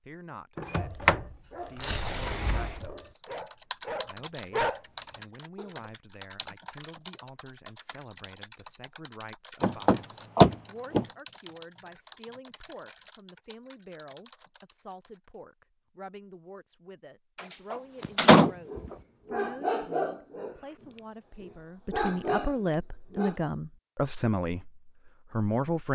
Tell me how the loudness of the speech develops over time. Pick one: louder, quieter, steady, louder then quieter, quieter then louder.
louder.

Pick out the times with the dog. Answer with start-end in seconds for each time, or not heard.
0.7-5.8, 18.0-23.4.